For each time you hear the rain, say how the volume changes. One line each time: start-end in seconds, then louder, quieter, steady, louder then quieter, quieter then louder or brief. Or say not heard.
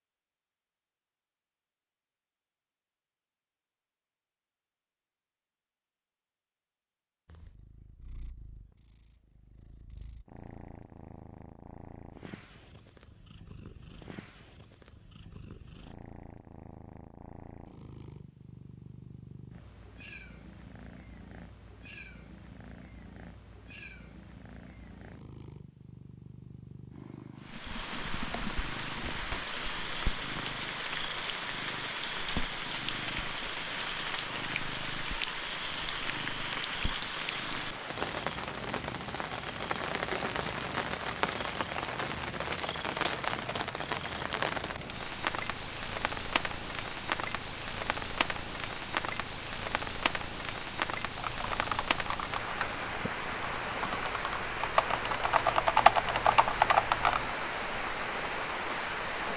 27.4-59.3 steady.